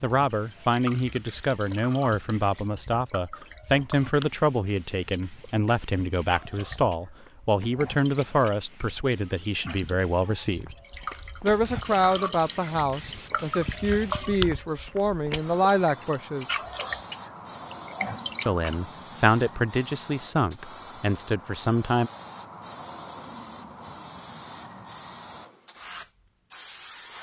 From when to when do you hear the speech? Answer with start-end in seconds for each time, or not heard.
0.0-10.8, 11.4-16.6, 18.4-22.1.